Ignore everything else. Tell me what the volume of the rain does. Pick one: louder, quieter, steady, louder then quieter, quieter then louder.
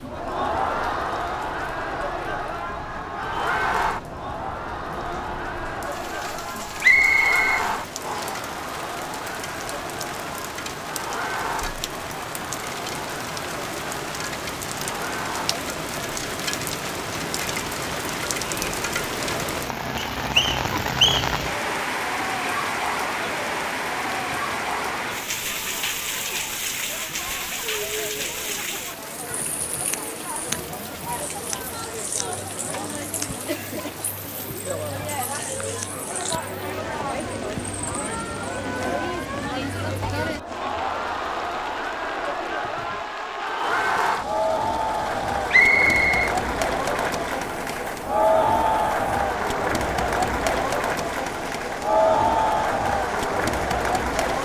louder then quieter.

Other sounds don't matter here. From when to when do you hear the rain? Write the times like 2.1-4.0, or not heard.
0.0-54.4.